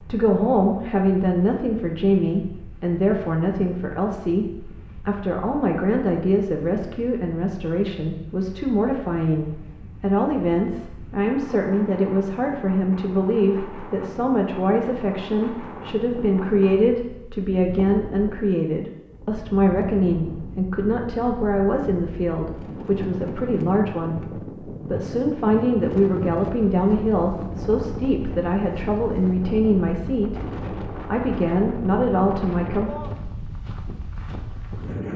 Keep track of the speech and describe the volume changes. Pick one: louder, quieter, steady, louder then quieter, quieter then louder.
steady.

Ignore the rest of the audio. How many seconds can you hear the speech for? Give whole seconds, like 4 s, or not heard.
33 s.